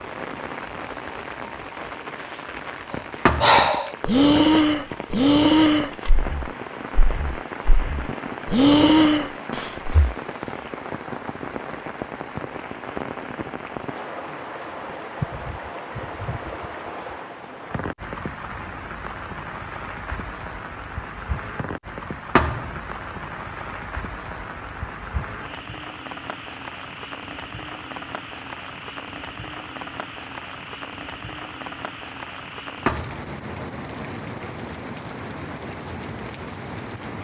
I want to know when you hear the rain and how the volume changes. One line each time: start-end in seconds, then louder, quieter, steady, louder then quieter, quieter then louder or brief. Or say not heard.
0.0-37.2 steady.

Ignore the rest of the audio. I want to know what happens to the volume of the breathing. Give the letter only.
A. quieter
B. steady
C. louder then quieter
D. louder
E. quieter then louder
E.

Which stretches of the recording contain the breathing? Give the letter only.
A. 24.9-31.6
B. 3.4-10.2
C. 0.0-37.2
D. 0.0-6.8
B.